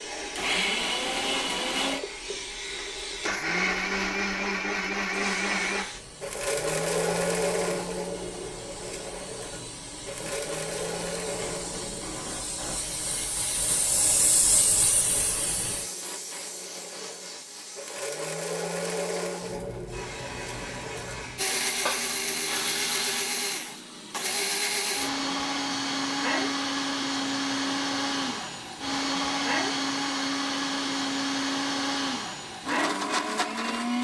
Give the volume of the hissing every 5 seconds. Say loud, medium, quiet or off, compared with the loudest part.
medium, medium, loud, medium, medium, medium, medium.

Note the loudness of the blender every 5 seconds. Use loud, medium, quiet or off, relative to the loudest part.
loud, loud, medium, medium, loud, loud, loud.